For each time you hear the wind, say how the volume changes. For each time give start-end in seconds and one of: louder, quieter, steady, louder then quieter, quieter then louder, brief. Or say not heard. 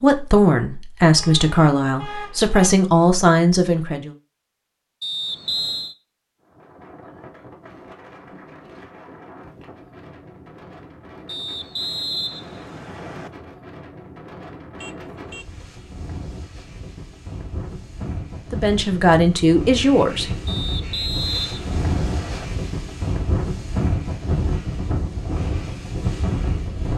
6.4-26.9 louder.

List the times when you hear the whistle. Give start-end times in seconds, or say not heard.
5.0-6.0, 11.2-13.3, 20.4-22.5.